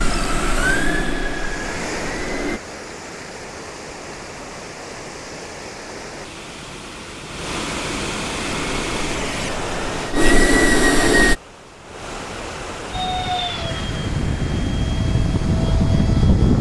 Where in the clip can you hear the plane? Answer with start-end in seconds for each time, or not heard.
0.0-2.6, 8.4-11.3, 12.9-16.5.